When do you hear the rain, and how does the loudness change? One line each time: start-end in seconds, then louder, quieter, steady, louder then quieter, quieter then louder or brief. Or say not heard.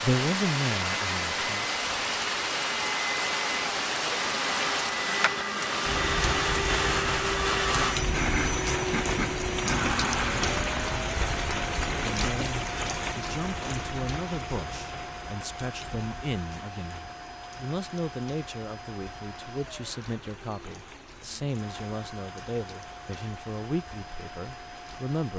0.0-25.3 quieter.